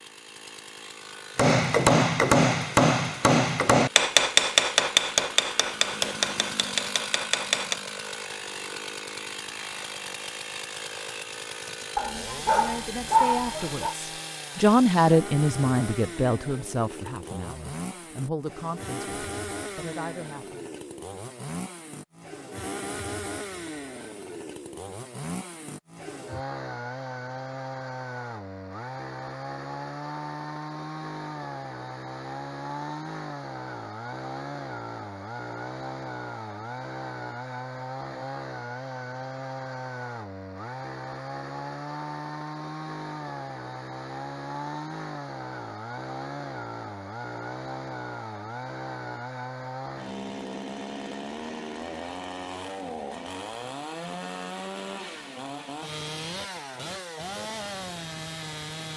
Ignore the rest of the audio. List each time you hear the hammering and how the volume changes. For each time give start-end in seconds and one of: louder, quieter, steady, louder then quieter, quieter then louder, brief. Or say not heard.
1.4-7.8 quieter.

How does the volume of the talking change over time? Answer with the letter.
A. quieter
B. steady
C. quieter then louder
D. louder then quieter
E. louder
D.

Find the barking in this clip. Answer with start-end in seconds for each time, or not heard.
11.9-13.9.